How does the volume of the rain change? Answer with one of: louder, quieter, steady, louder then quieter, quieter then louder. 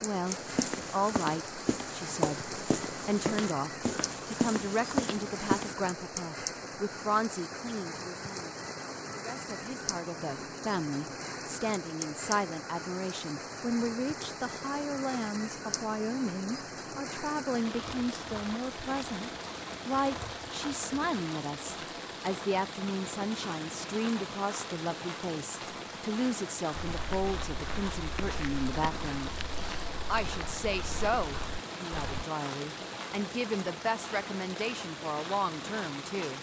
steady.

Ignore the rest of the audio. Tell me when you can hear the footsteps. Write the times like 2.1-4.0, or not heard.
0.2-5.8, 26.7-32.2.